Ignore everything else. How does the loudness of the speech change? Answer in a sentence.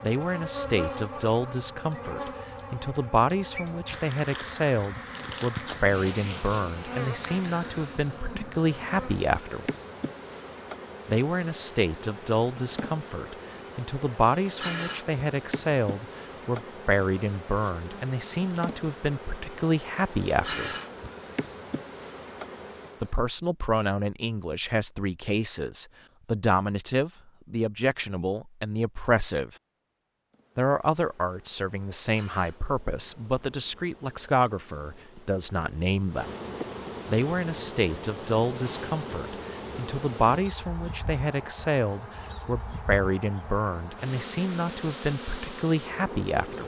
The loudness of the speech stays about the same.